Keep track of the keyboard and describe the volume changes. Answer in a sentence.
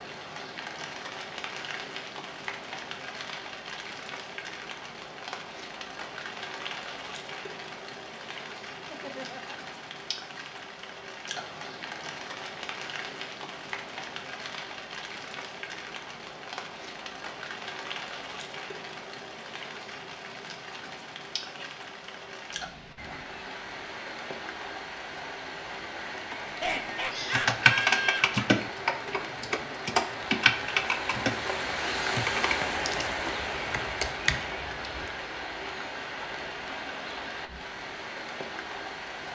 The loudness of the keyboard goes down.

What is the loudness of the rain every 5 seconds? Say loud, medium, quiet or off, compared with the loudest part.
medium, medium, medium, medium, medium, medium, loud, medium.